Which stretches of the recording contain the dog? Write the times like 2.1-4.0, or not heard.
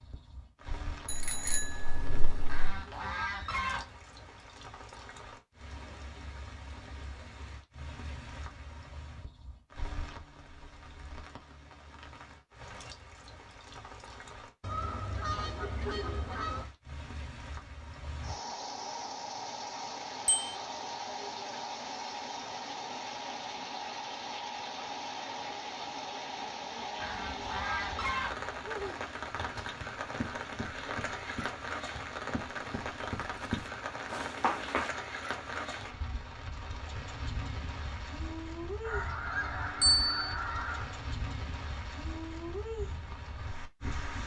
not heard.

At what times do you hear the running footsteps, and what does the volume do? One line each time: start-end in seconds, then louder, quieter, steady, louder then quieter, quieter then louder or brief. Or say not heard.
29.2-34.9 louder.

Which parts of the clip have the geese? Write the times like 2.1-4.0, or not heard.
2.5-4.0, 14.6-16.6, 26.9-28.9, 38.8-41.0.